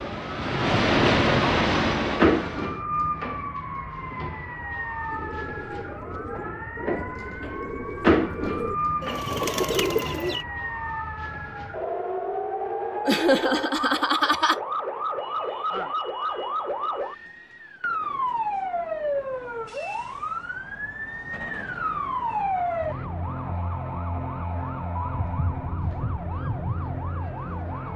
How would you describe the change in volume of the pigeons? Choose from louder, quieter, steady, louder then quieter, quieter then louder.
louder.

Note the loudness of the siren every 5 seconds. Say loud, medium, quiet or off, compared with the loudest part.
loud, loud, loud, loud, loud, medium.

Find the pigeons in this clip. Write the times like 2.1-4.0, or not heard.
5.0-10.4.